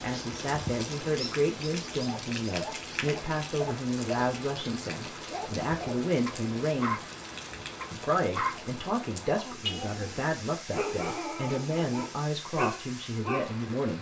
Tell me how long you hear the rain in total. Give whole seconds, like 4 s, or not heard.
14 s.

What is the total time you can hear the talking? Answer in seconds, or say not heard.
13 s.